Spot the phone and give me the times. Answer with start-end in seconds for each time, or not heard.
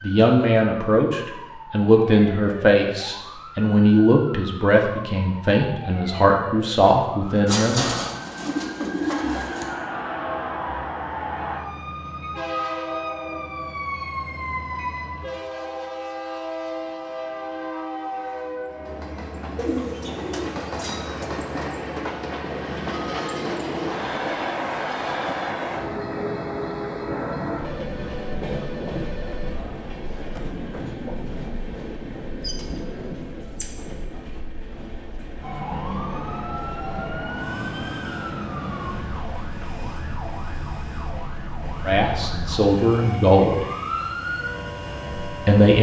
27.6-29.6.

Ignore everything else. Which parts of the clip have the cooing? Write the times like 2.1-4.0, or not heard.
7.5-9.7, 19.6-21.3, 32.4-34.0.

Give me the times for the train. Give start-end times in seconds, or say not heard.
10.0-45.7.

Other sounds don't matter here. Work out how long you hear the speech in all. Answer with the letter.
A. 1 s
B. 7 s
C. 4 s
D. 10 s
D.